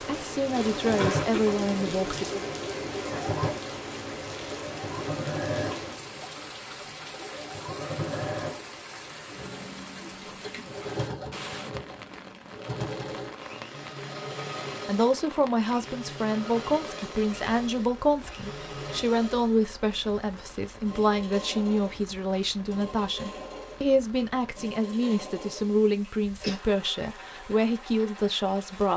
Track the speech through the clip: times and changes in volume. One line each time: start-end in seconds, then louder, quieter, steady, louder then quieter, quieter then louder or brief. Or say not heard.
0.1-2.5 brief
14.8-28.9 steady.